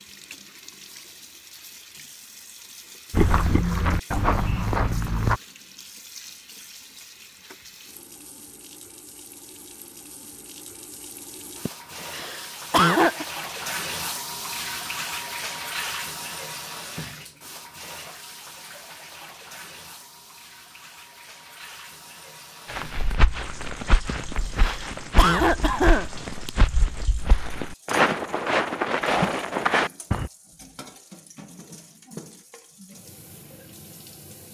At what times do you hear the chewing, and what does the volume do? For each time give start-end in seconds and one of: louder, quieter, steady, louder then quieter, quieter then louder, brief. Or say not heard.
not heard.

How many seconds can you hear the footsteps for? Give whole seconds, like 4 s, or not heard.
10 s.